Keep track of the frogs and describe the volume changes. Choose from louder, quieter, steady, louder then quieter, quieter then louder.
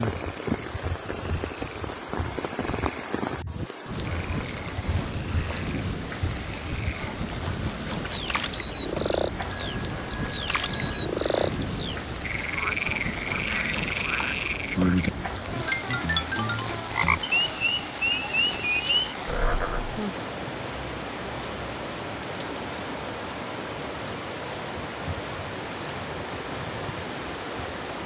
louder.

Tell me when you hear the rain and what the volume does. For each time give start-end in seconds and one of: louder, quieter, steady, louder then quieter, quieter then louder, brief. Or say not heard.
0.0-28.0 steady.